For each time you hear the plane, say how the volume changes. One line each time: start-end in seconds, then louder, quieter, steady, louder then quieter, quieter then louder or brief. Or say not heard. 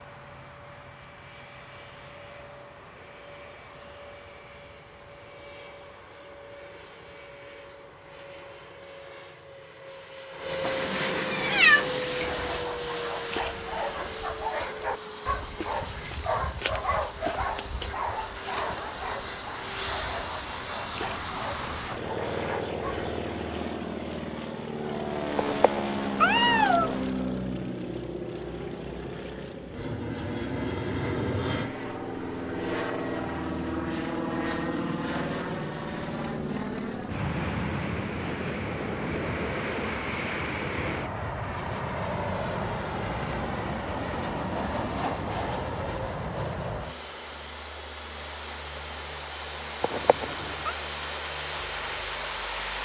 0.0-52.8 louder.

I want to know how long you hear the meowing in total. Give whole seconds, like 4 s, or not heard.
5 s.